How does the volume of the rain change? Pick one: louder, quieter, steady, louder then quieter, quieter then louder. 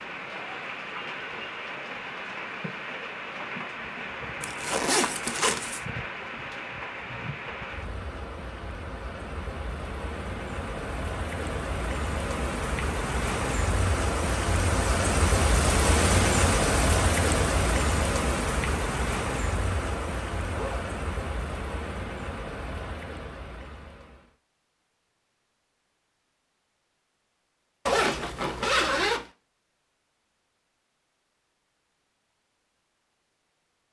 louder then quieter.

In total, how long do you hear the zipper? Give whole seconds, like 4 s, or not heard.
3 s.